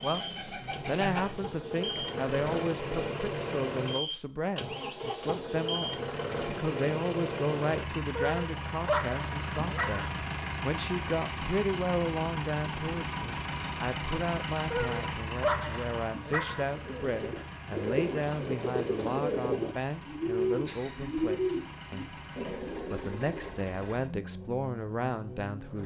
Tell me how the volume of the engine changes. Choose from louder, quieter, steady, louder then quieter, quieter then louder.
quieter.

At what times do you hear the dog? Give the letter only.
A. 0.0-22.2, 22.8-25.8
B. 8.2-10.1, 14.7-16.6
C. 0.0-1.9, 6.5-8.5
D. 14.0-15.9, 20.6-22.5
B.